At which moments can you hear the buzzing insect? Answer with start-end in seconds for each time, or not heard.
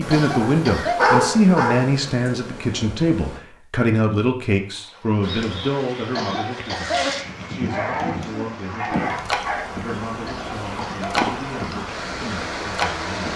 0.0-3.4, 5.2-13.3.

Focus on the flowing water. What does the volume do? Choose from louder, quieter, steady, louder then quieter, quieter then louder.
louder.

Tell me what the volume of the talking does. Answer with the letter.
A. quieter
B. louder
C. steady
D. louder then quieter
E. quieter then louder
A.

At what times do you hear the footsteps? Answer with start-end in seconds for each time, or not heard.
not heard.